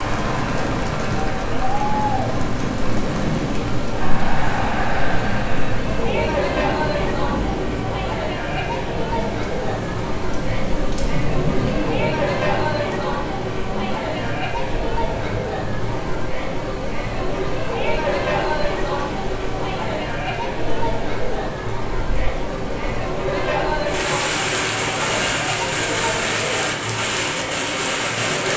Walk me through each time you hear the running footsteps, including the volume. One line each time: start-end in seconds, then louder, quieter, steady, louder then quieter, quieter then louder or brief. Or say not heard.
not heard.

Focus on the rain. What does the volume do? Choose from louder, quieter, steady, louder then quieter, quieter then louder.
quieter then louder.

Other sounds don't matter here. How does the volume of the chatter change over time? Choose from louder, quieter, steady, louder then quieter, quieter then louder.
steady.